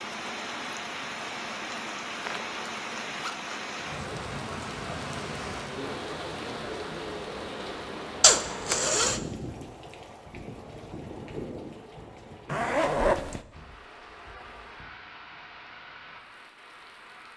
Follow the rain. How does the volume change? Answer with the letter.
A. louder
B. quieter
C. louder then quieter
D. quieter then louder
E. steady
B.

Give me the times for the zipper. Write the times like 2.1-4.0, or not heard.
2.2-3.9, 8.2-9.2, 12.4-13.4.